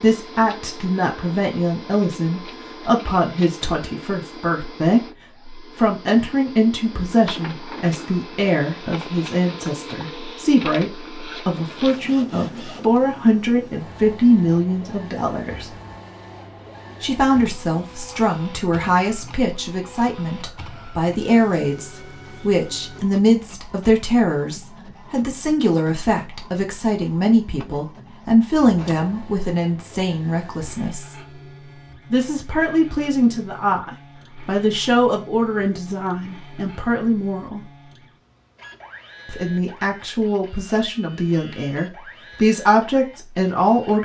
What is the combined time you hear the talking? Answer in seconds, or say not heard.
40 s.